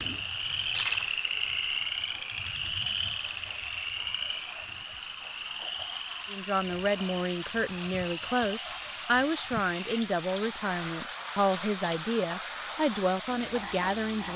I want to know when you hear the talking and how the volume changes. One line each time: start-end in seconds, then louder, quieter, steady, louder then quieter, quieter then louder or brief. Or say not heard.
6.3-14.3 steady.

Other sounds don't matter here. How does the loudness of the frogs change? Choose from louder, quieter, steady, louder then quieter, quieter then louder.
quieter.